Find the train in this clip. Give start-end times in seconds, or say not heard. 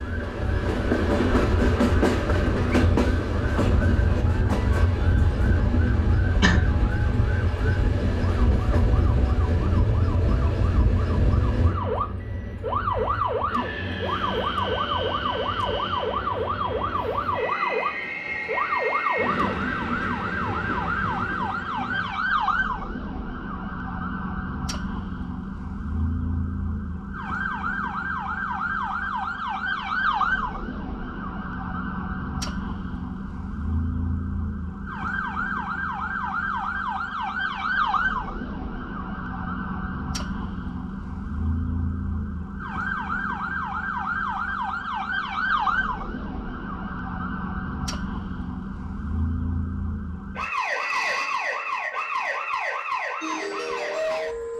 0.0-22.1.